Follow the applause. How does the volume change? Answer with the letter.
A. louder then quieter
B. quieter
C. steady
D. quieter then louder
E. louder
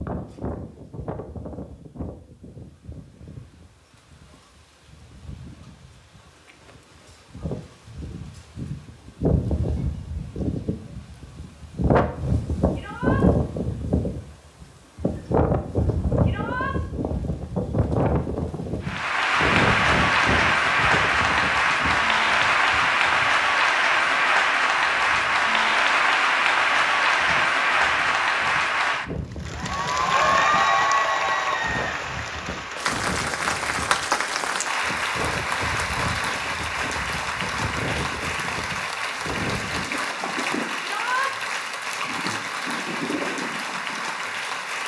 B.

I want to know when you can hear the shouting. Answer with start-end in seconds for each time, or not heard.
12.7-13.2, 16.2-16.8, 40.8-41.3.